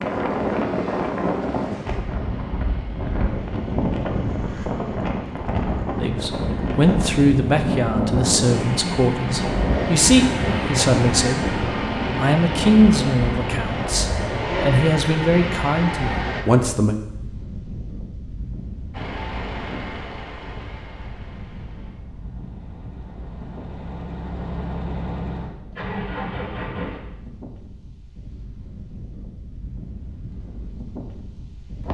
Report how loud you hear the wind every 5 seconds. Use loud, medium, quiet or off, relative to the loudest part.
loud, loud, loud, medium, quiet, quiet, quiet.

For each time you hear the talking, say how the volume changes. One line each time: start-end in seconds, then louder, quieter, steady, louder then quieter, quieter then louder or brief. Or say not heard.
6.0-16.9 steady.